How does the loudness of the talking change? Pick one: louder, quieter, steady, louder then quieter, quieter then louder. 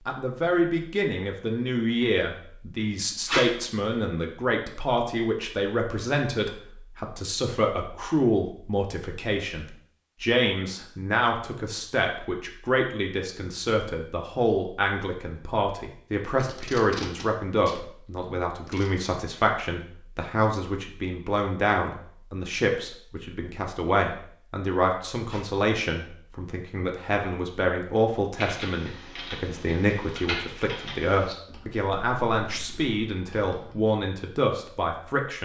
steady.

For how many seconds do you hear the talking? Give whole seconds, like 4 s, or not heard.
35 s.